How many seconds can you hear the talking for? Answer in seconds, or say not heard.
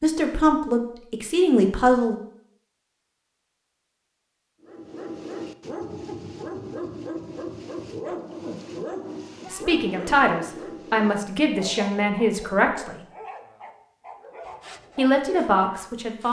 7 s.